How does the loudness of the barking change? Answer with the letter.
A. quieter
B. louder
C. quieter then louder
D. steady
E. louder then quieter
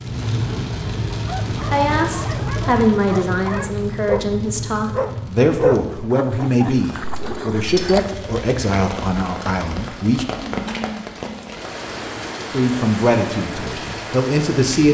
E.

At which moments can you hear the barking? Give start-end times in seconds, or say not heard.
1.2-8.2.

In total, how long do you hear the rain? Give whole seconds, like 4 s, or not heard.
15 s.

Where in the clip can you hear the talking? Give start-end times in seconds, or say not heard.
1.6-10.2, 12.5-14.8.